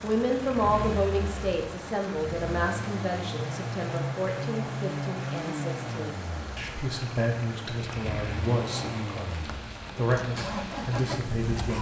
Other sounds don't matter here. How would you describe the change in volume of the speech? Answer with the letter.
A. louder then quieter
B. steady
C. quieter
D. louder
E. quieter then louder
E.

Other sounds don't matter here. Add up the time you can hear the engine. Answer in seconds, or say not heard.
12 s.